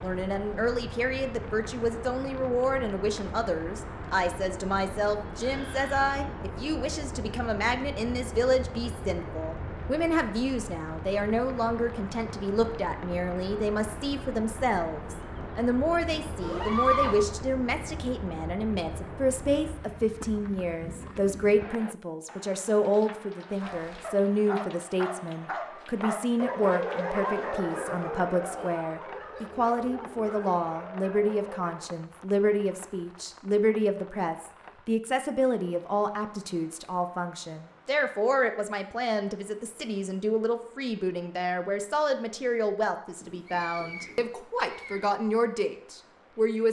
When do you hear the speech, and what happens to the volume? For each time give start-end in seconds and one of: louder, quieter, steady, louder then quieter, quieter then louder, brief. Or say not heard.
0.0-46.6 steady.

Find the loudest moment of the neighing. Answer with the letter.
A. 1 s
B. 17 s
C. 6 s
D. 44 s
B.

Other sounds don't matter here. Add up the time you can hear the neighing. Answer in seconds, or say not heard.
3 s.